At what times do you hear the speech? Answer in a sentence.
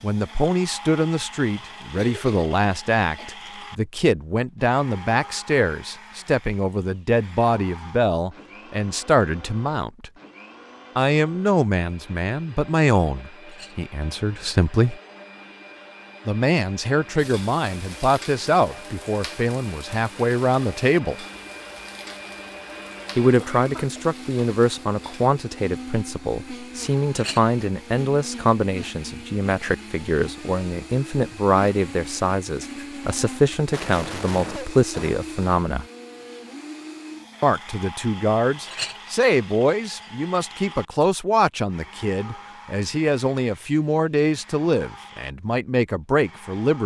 You can hear the speech from 0.0 to 10.1 s, from 10.9 to 15.0 s, from 16.2 to 21.2 s, from 23.1 to 35.9 s and from 37.4 to 46.8 s.